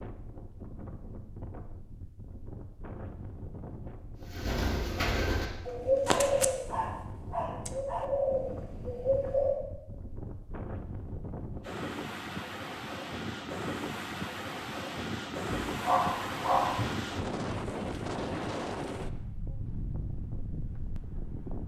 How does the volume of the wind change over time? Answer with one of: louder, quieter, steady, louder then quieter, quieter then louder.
louder.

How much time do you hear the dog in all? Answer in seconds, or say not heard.
3 s.